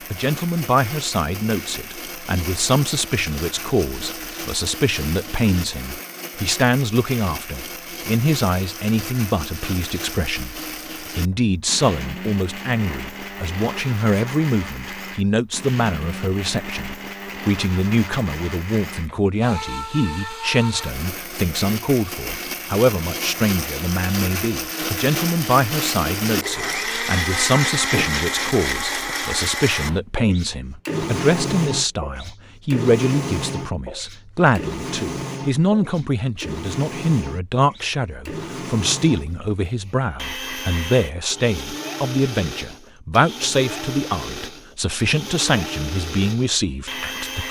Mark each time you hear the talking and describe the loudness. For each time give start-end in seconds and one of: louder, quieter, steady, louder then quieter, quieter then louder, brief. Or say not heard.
0.1-47.4 steady.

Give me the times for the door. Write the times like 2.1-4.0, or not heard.
27.8-29.1.